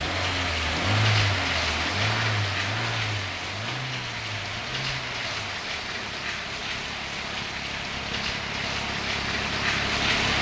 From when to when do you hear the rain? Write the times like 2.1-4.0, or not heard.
0.0-10.3.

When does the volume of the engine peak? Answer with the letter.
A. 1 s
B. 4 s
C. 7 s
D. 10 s
A.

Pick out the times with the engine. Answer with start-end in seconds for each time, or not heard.
0.0-10.3.